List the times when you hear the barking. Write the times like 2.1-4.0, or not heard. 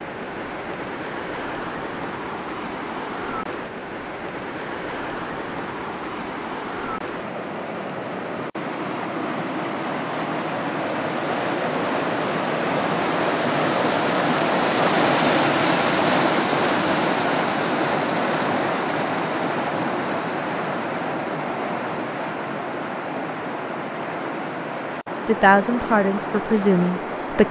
not heard.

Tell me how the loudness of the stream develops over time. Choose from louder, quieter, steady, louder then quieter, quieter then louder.
louder then quieter.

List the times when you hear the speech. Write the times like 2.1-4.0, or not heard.
25.2-27.4.